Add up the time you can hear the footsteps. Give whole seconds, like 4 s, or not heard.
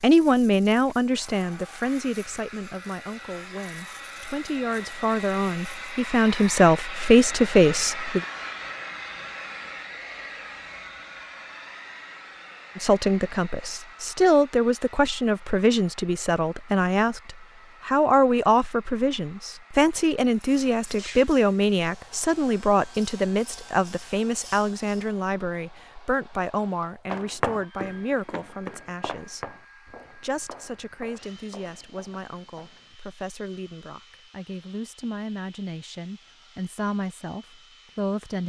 6 s.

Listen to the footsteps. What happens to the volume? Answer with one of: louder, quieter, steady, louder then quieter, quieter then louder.
quieter.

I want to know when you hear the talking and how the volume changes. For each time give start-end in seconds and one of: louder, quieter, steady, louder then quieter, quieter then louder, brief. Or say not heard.
0.0-8.2 quieter then louder
12.8-38.4 quieter.